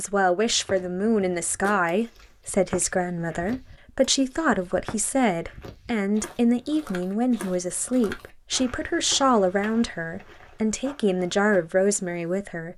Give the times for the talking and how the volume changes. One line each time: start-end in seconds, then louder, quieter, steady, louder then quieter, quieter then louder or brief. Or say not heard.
0.0-12.7 steady.